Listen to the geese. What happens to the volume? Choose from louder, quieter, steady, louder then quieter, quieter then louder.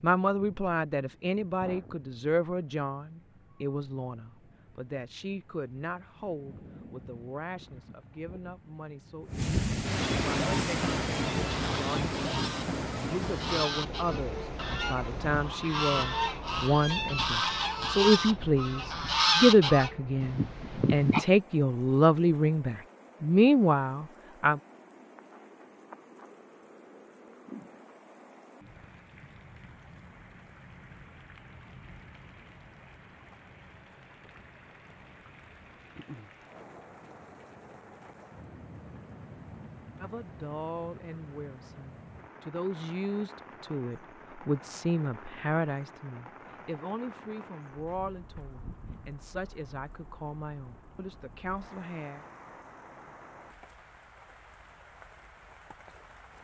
louder.